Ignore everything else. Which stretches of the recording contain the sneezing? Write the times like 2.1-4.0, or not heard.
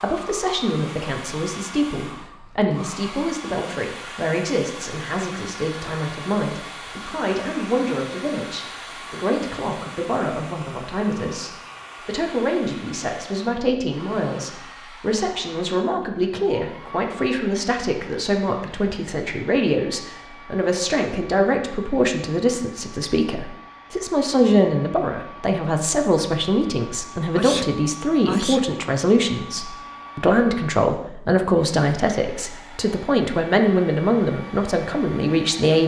27.4-28.8.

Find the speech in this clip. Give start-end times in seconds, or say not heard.
0.0-35.8.